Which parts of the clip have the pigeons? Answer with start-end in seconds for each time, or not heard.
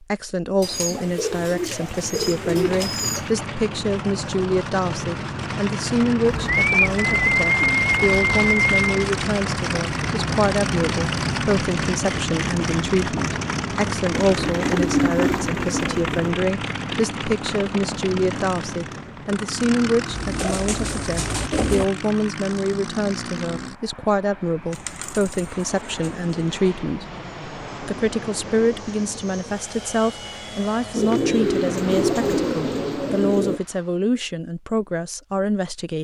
0.6-3.2, 6.2-9.1, 14.3-16.4, 20.1-21.9, 24.7-26.1, 30.9-33.6.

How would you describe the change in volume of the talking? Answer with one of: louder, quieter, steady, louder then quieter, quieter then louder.
steady.